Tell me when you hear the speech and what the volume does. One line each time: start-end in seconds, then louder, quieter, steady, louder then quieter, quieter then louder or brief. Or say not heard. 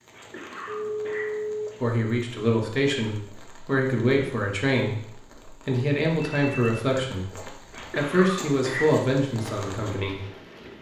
1.8-10.2 steady.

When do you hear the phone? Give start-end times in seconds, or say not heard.
0.7-1.8, 6.2-6.8.